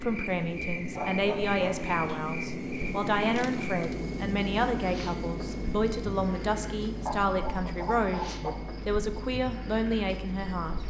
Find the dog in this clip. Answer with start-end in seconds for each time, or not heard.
0.9-2.2, 7.0-8.6.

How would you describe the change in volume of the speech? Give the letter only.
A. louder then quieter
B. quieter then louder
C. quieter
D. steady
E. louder
D.